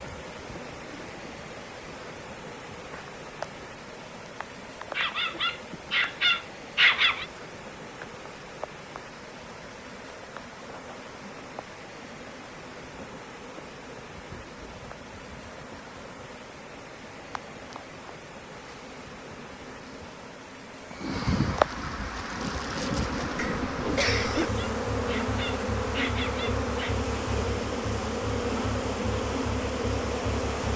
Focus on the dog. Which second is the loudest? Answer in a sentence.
The loudest moment of the dog is at 7 seconds.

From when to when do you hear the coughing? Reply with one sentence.
You can hear the coughing from 23.4 to 24.5 s.